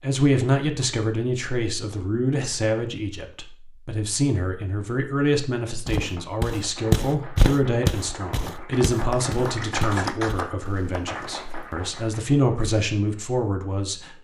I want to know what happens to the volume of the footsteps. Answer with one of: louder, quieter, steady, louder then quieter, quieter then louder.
quieter.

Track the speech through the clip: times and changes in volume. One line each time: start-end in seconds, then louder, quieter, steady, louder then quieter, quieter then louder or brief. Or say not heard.
0.0-14.1 steady.